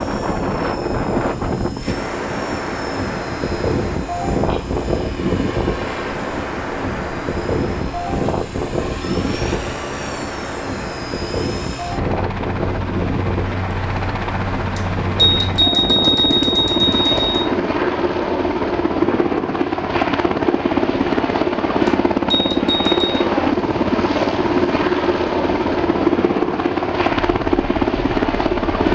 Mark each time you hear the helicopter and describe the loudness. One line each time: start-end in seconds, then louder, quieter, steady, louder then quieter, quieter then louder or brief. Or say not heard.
0.0-28.9 louder.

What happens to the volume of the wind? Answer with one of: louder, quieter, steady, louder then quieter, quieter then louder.
quieter.